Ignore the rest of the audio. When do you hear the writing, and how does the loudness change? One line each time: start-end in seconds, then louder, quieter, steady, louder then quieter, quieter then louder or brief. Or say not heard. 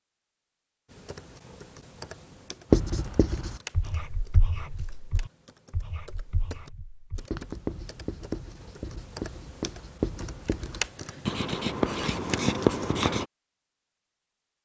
2.7-13.2 quieter then louder.